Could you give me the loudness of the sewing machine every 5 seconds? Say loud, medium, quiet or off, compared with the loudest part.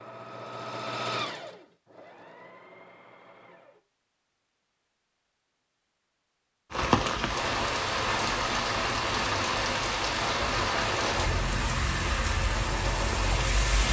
loud, off, loud.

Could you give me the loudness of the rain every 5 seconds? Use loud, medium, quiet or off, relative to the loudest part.
off, loud, loud.